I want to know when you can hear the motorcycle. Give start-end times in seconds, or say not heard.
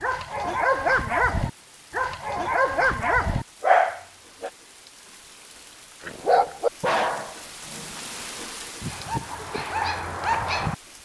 not heard.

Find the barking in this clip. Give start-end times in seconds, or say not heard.
0.0-4.5, 6.0-10.8.